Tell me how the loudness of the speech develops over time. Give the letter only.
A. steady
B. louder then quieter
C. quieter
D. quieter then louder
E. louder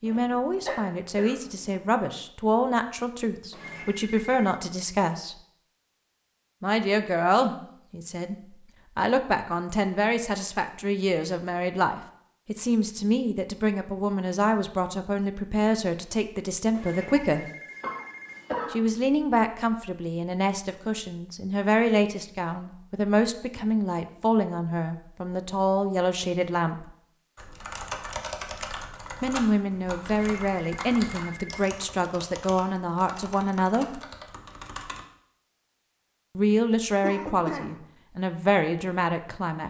A.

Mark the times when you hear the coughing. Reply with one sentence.
The coughing can be heard from 0.1 to 1.8 s, from 17.2 to 18.8 s and from 37.0 to 37.8 s.